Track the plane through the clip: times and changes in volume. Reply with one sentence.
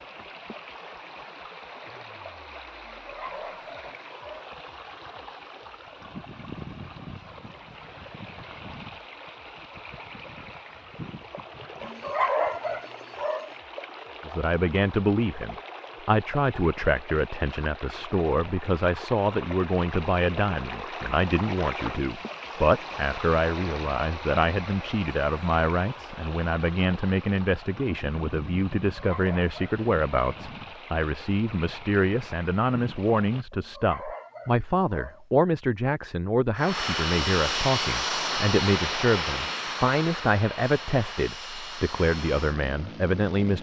The plane can be heard from 36.5 to 43.5 s, getting quieter.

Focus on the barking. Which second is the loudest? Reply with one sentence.
The loudest moment of the barking is at 12 seconds.